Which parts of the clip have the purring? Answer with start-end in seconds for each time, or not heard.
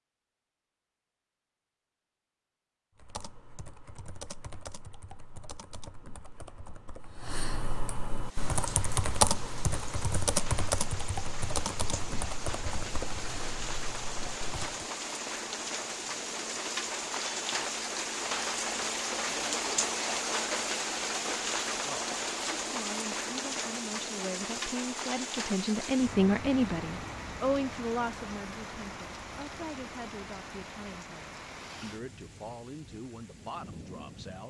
not heard.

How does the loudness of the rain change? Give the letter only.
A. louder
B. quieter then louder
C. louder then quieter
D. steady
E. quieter
C.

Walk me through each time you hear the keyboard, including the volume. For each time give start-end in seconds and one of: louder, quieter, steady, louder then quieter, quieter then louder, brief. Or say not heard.
3.0-14.8 louder then quieter.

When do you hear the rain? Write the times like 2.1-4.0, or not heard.
8.1-34.4.